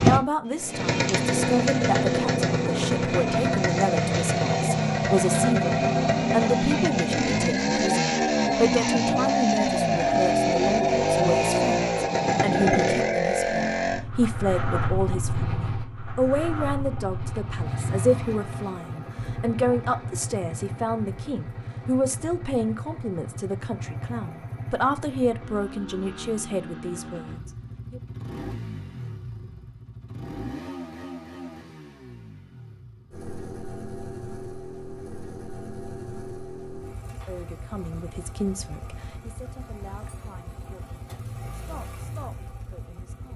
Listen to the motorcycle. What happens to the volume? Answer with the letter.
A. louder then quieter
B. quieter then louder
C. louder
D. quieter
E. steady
D.